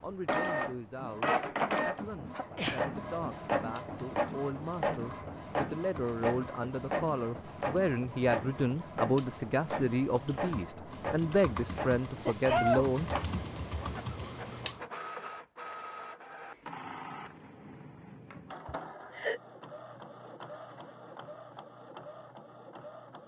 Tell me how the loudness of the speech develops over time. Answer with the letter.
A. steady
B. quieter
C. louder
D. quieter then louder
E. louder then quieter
C.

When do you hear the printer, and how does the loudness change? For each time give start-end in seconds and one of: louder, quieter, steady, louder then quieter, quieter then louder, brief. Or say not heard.
0.2-23.2 quieter.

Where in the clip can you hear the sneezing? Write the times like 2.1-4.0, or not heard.
2.4-2.9, 12.2-12.9, 18.6-19.4.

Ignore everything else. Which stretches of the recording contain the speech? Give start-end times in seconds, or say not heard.
0.0-13.1.